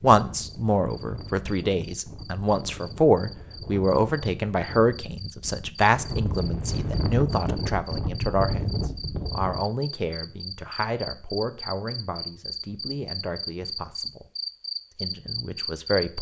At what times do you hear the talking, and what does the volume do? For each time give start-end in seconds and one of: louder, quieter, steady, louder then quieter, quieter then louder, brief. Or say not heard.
0.0-14.2 quieter
15.0-16.1 brief.